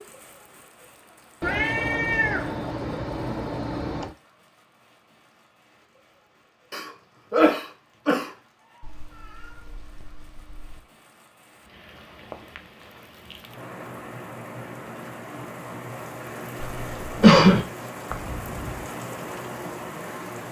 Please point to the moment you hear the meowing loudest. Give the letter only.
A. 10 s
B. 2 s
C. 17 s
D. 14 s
B.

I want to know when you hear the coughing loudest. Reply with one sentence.
The volume of the coughing peaks at 17 seconds.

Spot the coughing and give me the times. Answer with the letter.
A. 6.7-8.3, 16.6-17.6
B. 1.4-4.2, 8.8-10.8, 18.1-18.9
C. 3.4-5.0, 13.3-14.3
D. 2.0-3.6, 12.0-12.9
A.